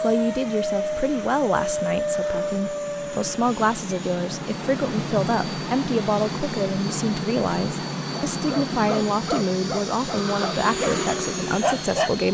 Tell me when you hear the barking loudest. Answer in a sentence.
The loudest moment of the barking is at 12 seconds.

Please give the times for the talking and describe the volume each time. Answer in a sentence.
The talking can be heard from 0.0 to 12.2 s, at a steady volume.